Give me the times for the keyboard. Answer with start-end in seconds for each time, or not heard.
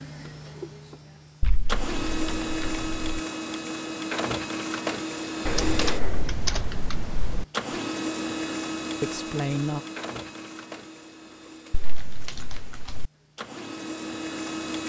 1.4-3.1, 5.5-7.5, 11.7-13.1.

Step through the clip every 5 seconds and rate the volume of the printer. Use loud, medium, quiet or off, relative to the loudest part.
loud, loud, medium.